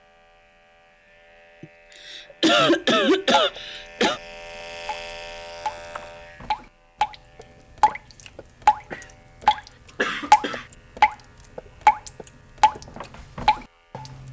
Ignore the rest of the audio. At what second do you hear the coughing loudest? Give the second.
3 s.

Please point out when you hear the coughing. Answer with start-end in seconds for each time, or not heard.
1.6-4.2, 8.9-10.7.